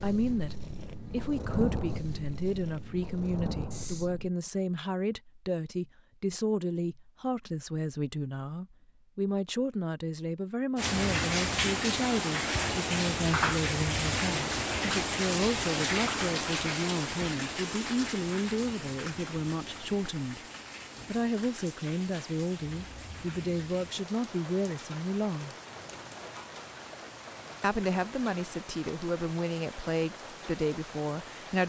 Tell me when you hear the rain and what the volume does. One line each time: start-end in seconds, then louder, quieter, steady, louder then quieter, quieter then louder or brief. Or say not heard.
10.8-31.6 quieter.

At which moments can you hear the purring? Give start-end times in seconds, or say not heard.
0.0-4.3.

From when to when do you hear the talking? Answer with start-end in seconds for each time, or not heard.
0.0-20.4, 21.1-25.6, 27.6-31.6.